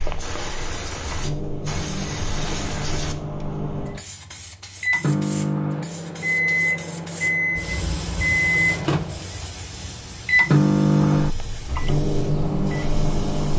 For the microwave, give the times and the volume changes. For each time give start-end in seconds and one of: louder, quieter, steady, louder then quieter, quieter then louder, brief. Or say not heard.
0.0-13.5 louder.